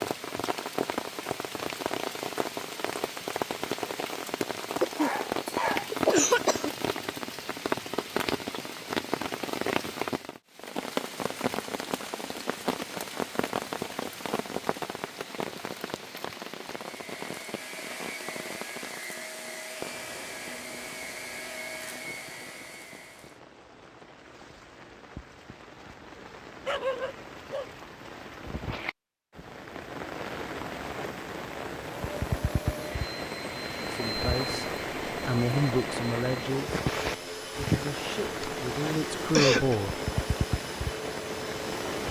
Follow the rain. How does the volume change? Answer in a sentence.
The volume of the rain goes down, then up.